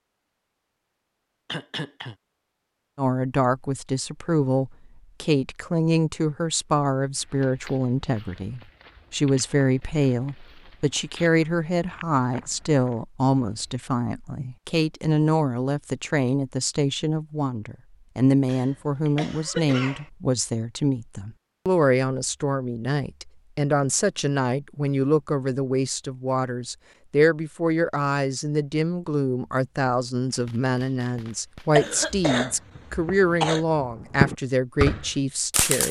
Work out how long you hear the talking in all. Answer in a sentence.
The talking can be heard for 33 seconds in total.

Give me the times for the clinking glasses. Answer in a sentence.
You can't hear the clinking glasses here.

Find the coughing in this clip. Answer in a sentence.
The coughing can be heard from 1.4 to 2.1 s, from 18.4 to 20.1 s and from 31.8 to 33.6 s.